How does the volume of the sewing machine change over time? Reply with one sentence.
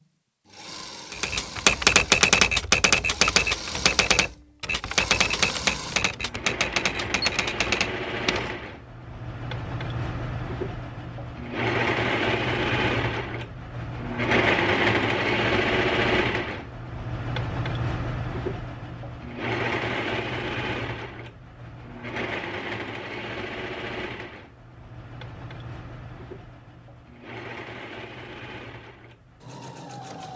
The loudness of the sewing machine goes up, then down.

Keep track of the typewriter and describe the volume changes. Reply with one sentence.
The volume of the typewriter goes down.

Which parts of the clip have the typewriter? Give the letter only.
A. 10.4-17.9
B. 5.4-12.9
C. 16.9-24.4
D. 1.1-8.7
D.